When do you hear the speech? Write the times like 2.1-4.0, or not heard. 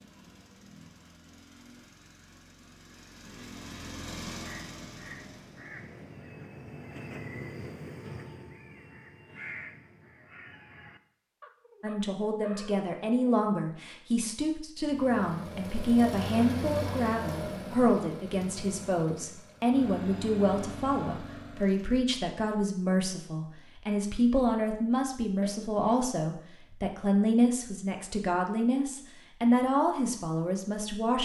11.8-31.1.